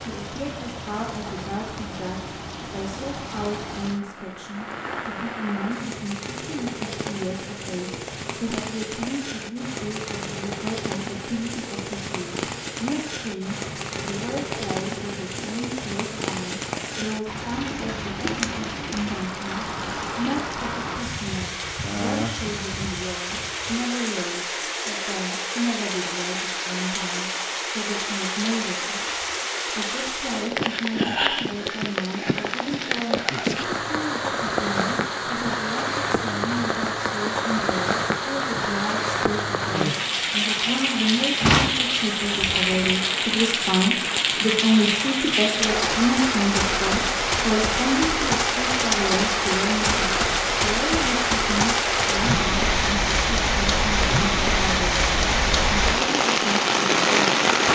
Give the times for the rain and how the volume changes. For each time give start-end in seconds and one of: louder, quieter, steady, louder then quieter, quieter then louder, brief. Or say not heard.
0.0-57.6 louder.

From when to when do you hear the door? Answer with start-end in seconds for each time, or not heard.
41.4-43.0.